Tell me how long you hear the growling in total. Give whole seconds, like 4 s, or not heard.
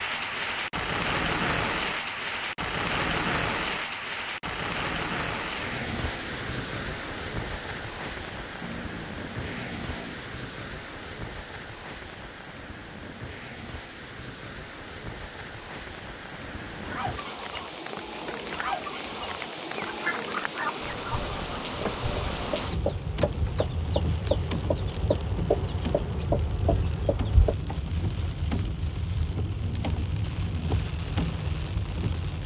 3 s.